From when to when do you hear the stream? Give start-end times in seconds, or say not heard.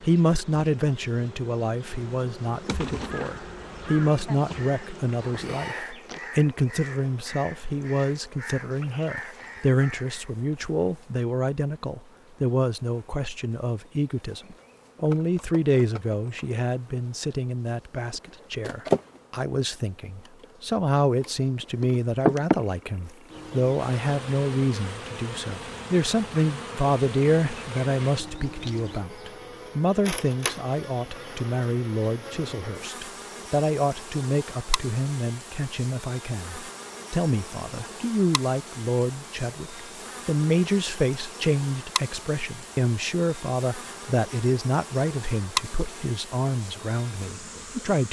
not heard.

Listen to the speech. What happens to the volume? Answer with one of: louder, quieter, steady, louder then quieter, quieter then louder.
steady.